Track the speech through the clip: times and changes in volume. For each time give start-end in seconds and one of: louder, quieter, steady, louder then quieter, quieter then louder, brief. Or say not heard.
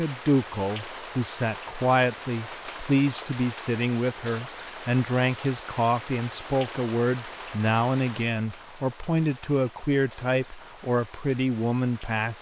0.0-12.3 steady.